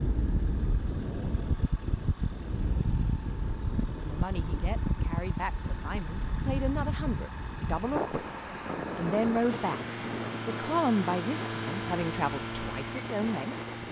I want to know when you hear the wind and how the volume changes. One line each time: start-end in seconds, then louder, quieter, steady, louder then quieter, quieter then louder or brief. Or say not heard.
0.0-13.8 quieter.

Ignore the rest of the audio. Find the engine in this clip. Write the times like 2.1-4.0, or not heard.
0.0-13.8.